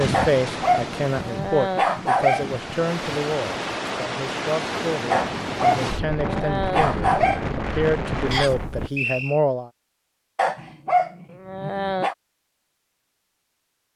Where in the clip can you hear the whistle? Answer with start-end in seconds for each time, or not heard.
8.3-9.4.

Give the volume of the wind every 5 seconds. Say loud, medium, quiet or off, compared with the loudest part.
loud, loud, off.